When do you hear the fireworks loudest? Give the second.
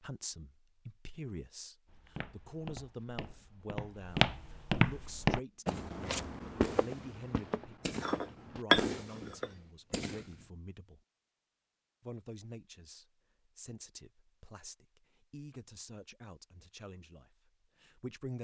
9 s.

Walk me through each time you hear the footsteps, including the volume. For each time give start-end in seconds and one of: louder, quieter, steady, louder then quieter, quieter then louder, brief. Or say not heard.
1.9-8.7 louder then quieter.